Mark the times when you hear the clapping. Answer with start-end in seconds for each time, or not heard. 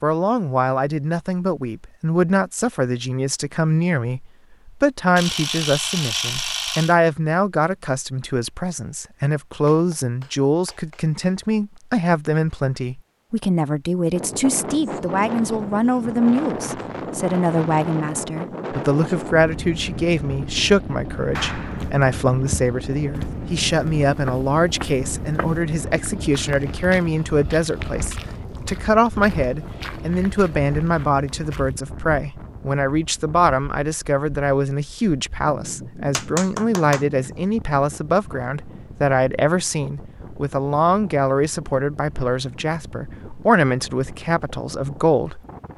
9.7-11.1, 21.4-21.9, 36.1-37.5.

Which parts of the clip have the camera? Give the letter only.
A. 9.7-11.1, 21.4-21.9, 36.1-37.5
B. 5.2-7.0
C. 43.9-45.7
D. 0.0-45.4
B.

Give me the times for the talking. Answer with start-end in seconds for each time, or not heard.
0.0-45.4.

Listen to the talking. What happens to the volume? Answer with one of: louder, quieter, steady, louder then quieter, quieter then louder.
steady.